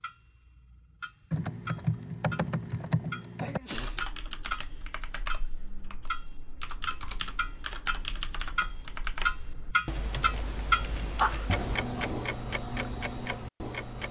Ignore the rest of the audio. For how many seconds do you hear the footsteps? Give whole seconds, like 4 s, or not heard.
not heard.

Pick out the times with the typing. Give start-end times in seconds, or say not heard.
1.3-11.8.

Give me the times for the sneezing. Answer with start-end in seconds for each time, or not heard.
3.4-4.1, 11.2-12.0.